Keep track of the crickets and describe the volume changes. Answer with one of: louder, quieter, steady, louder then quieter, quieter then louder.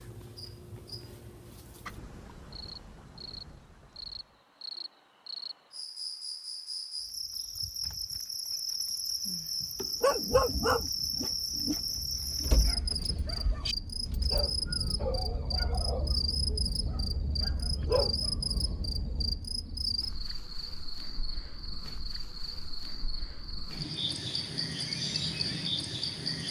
louder.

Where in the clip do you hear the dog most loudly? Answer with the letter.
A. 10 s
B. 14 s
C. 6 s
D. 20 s
A.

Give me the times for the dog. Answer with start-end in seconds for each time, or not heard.
10.0-19.4.